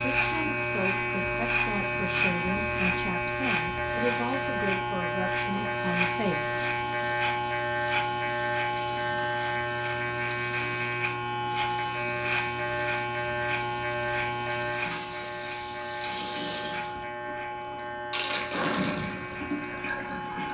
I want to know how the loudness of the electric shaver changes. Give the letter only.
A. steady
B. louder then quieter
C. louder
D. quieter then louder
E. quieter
E.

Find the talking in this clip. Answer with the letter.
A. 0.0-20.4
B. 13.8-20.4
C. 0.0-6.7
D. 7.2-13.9
C.